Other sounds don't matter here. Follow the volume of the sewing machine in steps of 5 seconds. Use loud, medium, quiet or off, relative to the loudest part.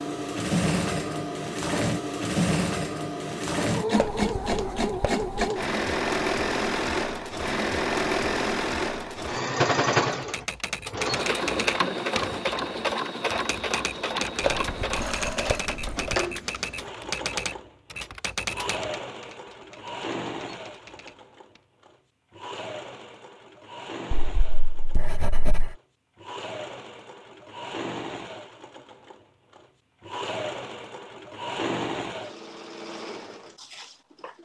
loud, loud, loud, medium, quiet, quiet, medium.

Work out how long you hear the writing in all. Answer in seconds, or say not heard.
5 s.